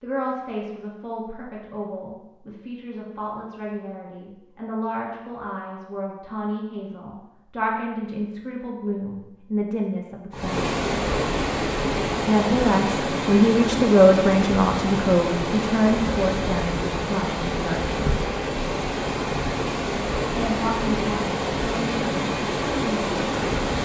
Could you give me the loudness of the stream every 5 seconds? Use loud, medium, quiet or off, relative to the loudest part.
off, off, loud, loud, loud.